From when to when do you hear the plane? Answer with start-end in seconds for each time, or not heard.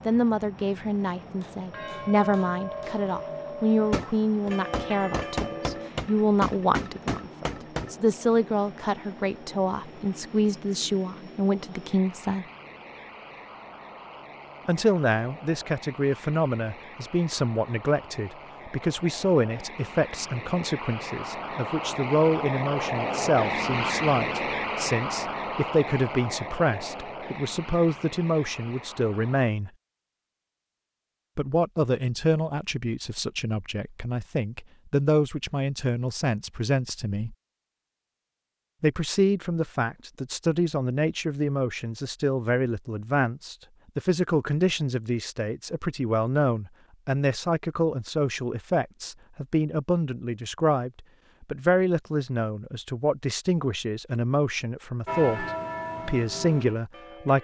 0.0-29.5.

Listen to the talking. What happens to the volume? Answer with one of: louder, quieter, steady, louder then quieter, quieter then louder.
steady.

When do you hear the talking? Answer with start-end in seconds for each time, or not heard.
0.1-12.4, 14.7-29.7, 31.4-37.4, 38.8-57.3.